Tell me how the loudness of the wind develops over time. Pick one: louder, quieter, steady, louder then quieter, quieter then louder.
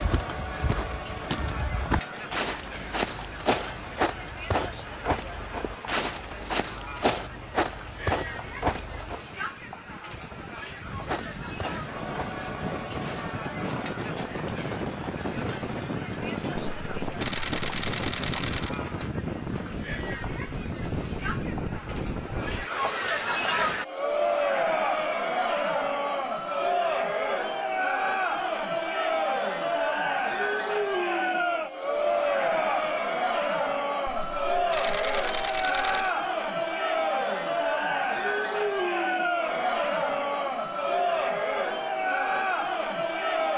louder.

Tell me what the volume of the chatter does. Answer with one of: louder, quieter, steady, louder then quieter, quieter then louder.
louder.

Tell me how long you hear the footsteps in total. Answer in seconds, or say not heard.
14 s.